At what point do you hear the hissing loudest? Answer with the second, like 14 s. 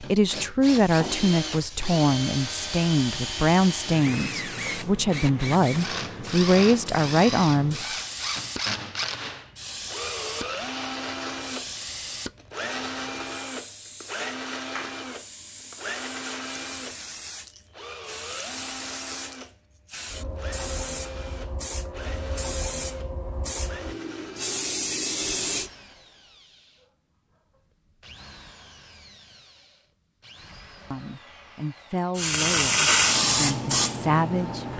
33 s.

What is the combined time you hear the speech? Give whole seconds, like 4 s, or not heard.
12 s.